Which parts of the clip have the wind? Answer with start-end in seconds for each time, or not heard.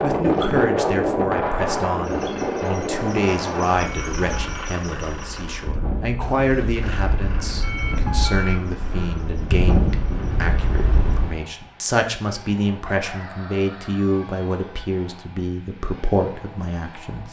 0.0-11.4.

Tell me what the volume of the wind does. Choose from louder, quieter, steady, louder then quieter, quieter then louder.
quieter then louder.